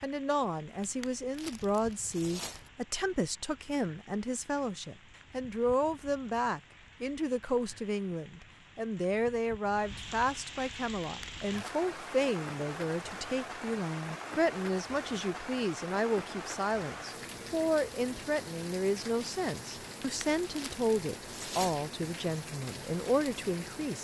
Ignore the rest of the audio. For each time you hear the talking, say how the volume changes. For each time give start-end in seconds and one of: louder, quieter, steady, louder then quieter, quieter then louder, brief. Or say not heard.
0.0-23.9 steady.